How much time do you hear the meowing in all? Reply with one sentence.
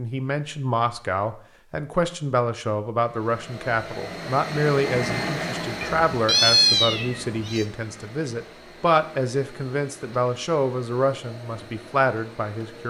You can hear the meowing for 2 seconds altogether.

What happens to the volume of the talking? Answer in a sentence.
The loudness of the talking stays about the same.